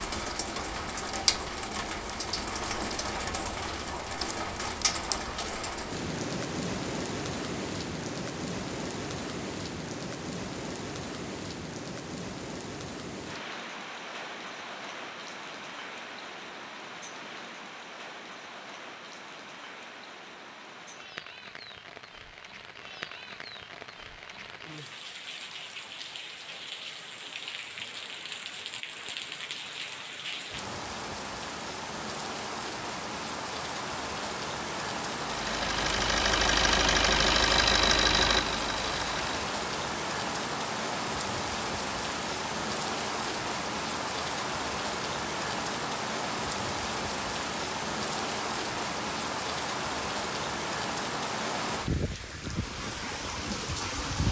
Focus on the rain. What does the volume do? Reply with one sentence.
The loudness of the rain goes down, then up.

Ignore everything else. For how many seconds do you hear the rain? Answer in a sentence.
You can hear the rain for 54 seconds altogether.